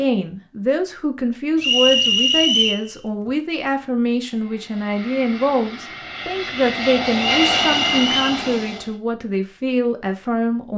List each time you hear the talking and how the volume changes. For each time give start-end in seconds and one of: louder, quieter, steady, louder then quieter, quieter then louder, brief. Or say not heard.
0.0-10.7 steady.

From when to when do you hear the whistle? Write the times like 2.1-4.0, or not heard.
1.6-2.9, 7.2-8.4.